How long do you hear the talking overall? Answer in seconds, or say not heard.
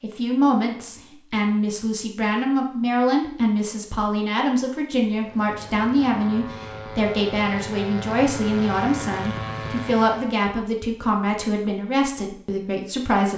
13 s.